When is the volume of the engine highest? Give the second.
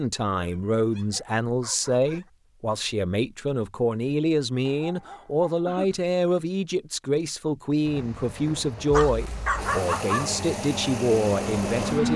12 s.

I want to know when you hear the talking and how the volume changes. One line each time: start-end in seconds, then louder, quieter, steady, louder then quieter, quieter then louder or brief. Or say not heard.
0.0-12.1 steady.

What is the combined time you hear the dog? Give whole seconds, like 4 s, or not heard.
5 s.